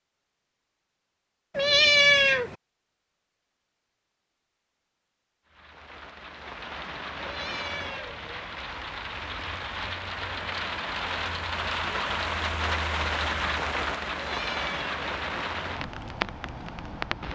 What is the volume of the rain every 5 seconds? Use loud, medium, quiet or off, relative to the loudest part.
off, medium, loud, loud.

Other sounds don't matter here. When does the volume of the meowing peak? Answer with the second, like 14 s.
2 s.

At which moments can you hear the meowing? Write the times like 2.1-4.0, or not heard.
1.6-2.5, 7.2-8.2, 14.2-14.9.